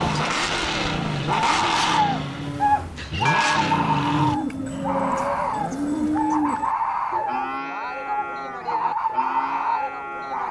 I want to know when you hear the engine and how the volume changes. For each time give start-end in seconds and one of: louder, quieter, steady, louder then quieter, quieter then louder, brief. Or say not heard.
0.0-4.4 quieter then louder.